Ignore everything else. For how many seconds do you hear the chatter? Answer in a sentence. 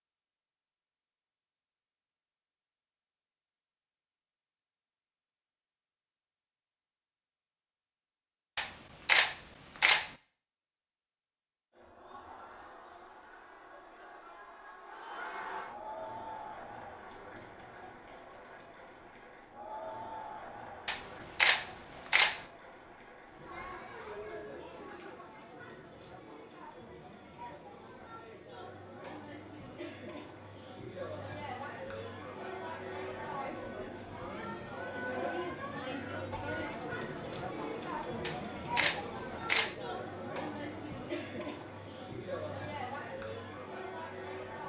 You can hear the chatter for 33 seconds altogether.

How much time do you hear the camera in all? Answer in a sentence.
You can hear the camera for 5 seconds altogether.